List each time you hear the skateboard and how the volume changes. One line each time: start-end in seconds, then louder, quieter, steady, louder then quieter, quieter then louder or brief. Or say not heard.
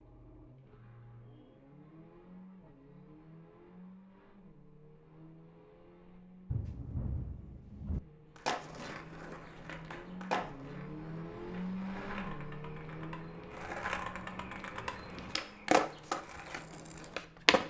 8.4-17.6 quieter then louder.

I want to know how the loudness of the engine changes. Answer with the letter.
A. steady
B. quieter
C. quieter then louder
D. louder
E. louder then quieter
E.